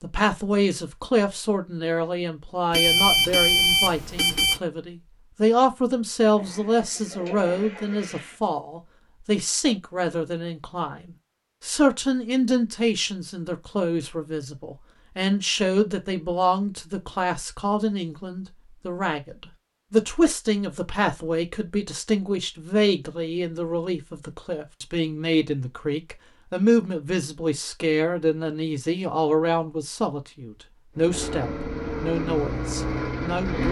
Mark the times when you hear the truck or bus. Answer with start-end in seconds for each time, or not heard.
30.9-33.6.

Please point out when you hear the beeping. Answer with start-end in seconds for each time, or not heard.
2.7-4.6.